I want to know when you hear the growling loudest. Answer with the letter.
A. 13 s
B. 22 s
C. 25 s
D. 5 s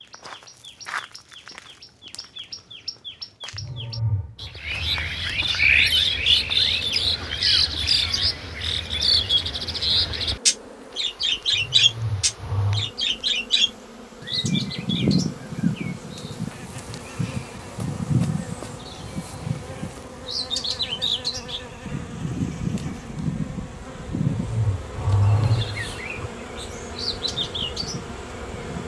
C.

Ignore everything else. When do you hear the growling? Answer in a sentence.
The growling can be heard from 3.5 to 4.5 s, from 11.5 to 12.9 s and from 24.1 to 26.3 s.